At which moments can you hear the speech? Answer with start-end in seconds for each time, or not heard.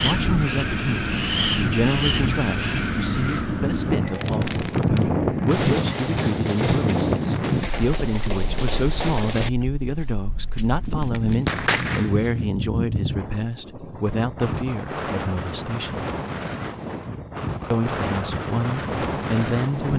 0.0-16.1, 17.7-19.9.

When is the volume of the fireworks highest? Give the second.
12 s.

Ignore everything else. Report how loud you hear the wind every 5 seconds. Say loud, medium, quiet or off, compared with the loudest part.
loud, loud, medium, medium.